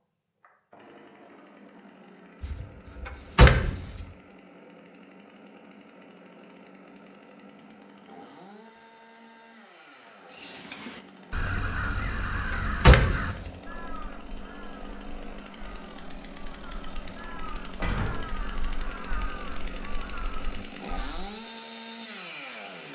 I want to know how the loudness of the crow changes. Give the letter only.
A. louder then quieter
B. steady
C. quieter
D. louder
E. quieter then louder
E.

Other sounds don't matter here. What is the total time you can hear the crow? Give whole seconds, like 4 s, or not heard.
11 s.